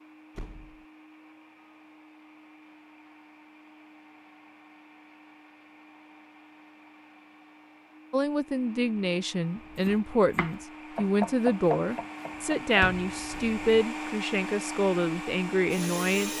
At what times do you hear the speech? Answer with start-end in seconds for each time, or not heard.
8.1-16.3.